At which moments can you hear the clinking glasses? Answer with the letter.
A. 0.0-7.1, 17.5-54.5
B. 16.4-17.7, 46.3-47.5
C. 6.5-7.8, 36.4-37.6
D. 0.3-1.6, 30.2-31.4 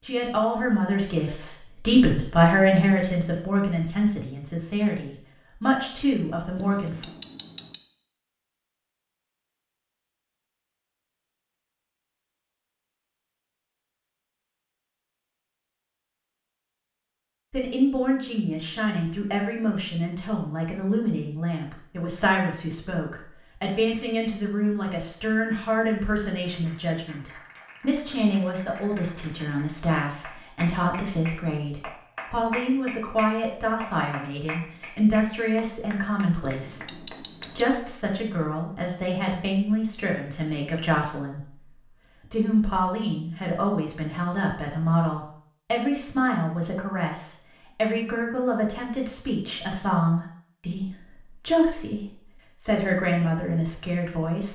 C.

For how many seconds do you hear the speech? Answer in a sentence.
You can hear the speech for 44 seconds altogether.